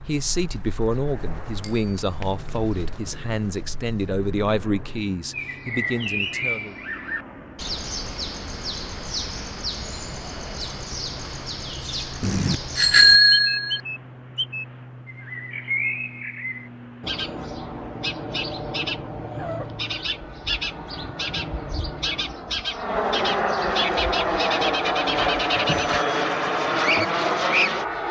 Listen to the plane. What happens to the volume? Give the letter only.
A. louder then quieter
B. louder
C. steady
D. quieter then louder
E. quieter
B.